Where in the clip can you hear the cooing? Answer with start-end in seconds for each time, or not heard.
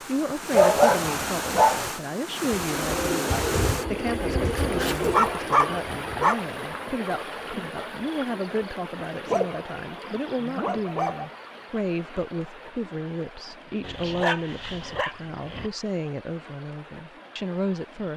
2.5-5.3.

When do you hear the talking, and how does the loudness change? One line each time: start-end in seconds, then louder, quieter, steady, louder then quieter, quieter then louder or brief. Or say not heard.
0.0-18.1 steady.